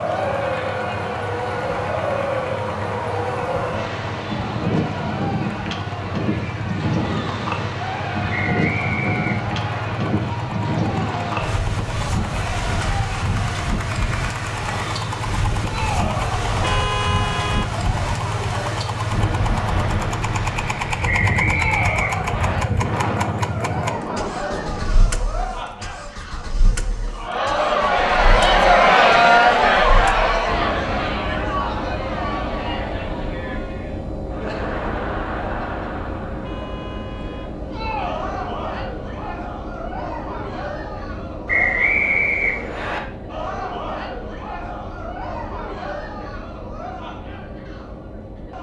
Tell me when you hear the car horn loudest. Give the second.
17 s.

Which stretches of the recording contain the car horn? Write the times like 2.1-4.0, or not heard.
16.5-17.7, 36.3-37.6.